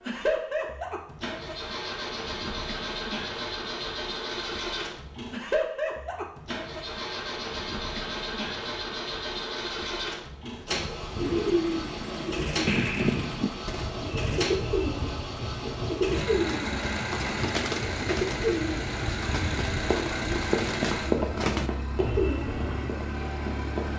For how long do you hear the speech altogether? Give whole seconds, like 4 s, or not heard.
not heard.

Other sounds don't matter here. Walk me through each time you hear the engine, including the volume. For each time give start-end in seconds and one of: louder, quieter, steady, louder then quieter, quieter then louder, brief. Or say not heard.
0.0-23.9 steady.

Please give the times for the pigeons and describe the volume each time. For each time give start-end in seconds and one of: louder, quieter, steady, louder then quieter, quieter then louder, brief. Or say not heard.
11.2-22.9 steady.